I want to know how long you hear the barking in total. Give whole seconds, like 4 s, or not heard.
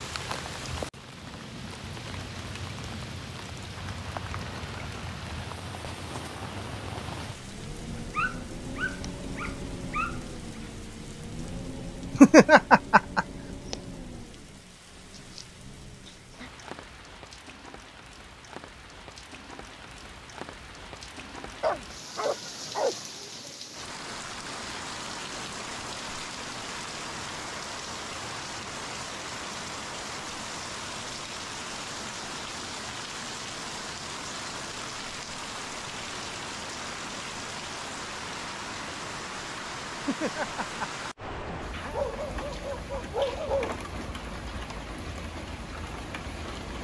6 s.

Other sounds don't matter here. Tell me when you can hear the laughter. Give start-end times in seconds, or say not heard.
12.2-13.2, 40.0-42.0.